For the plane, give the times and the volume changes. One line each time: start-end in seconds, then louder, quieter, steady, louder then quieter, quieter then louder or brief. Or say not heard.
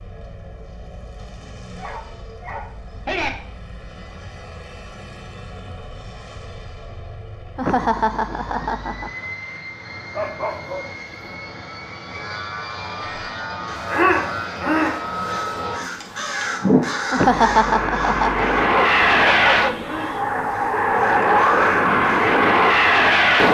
0.0-23.5 louder.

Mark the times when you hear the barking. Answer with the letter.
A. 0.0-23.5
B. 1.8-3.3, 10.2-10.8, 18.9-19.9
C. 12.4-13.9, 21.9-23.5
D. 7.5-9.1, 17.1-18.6
B.